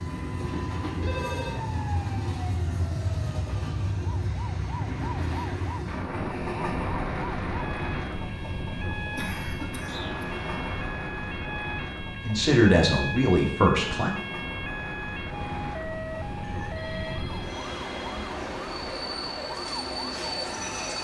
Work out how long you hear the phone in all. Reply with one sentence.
You can hear the phone for 4 seconds altogether.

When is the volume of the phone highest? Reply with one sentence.
The loudest moment of the phone is at 1 second.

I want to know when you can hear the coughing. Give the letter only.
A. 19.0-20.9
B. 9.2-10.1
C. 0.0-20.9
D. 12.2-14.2
B.